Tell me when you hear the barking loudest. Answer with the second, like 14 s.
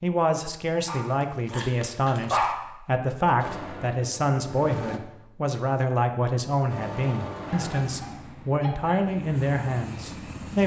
2 s.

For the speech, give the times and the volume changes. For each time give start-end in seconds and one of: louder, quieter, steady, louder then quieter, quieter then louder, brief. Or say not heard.
0.0-10.6 steady.